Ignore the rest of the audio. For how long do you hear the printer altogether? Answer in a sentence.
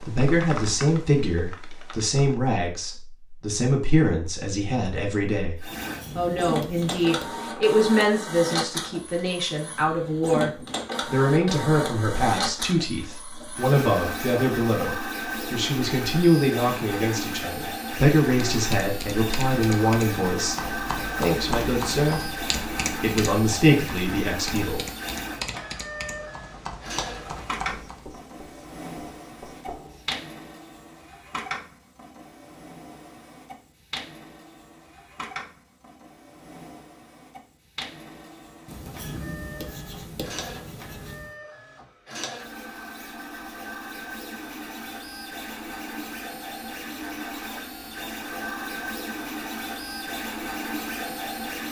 The printer can be heard for 46 seconds in total.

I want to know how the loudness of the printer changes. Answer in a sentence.
The volume of the printer goes down, then up.